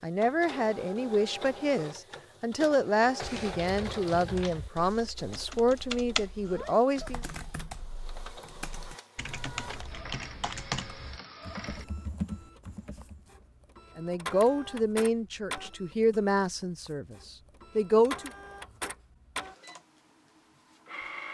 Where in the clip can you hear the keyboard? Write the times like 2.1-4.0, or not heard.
3.0-13.3.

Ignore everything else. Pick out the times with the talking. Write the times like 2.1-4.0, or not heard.
0.0-7.2, 13.9-17.1, 17.8-18.3.